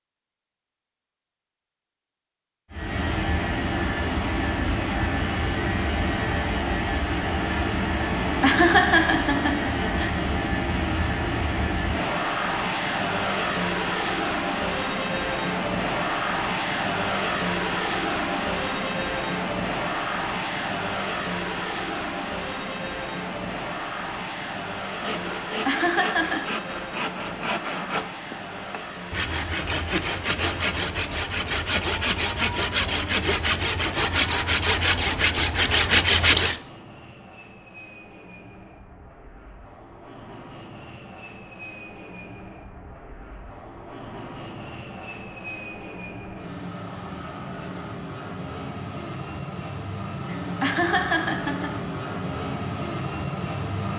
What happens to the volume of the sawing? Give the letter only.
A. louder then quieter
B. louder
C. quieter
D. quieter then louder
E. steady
B.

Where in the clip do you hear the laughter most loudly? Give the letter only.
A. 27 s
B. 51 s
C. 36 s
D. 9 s
D.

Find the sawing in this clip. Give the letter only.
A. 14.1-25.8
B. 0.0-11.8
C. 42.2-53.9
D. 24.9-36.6
D.